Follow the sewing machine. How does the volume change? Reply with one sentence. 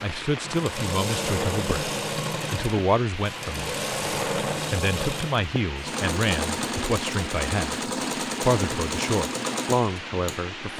The loudness of the sewing machine stays about the same.